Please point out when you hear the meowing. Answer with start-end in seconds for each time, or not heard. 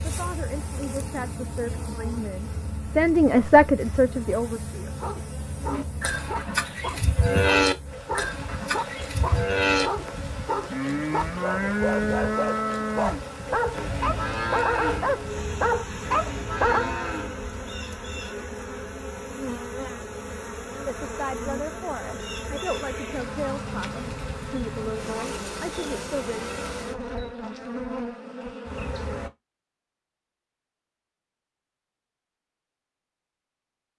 not heard.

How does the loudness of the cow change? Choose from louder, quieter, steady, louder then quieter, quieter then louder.
quieter.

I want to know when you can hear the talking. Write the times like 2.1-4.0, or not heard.
0.0-5.0, 20.9-26.5.